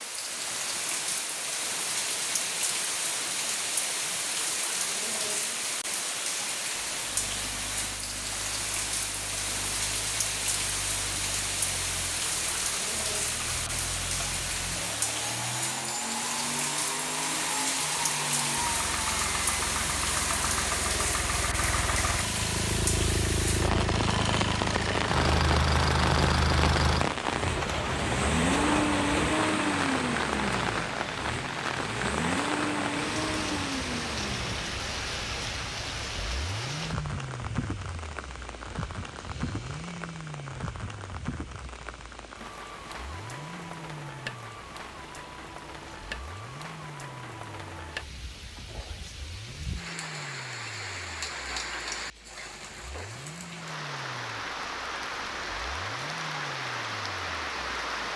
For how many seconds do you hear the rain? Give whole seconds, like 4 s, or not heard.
58 s.